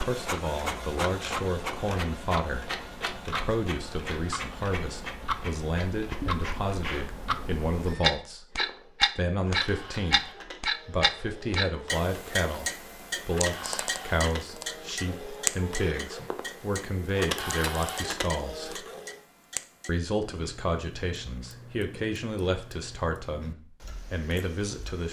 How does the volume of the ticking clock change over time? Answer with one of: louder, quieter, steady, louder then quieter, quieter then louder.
louder then quieter.